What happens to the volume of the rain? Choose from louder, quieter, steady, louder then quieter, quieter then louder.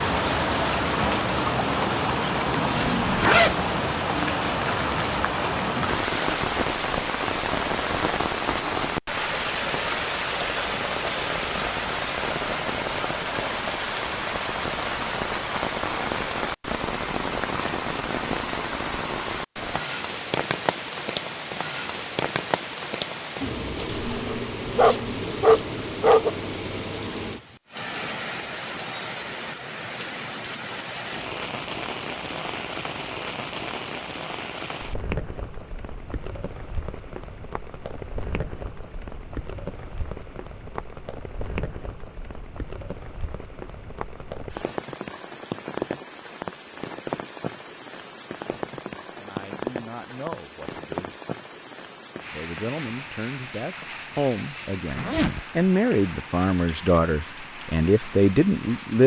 quieter.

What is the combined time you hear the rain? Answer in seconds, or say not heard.
59 s.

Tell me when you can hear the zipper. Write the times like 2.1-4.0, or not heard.
2.7-3.7, 23.9-25.9, 54.9-55.5.